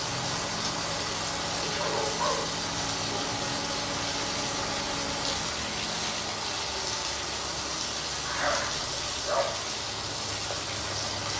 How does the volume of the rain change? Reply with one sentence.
The loudness of the rain stays about the same.